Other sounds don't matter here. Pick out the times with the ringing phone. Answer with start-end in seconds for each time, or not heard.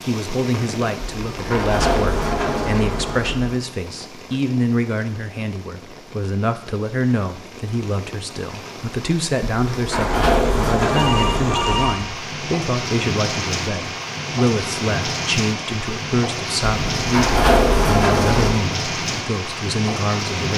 10.8-12.2.